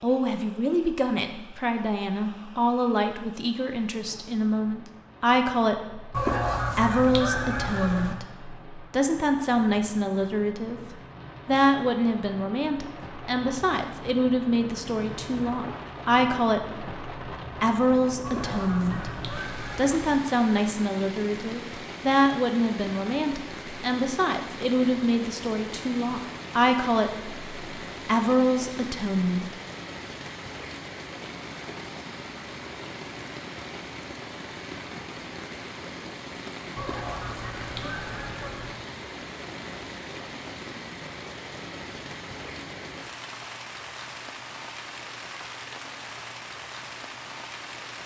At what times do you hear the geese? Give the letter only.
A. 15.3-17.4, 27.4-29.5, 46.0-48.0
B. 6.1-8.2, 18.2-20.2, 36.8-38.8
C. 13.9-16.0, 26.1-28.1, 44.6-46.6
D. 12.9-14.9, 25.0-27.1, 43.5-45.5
B.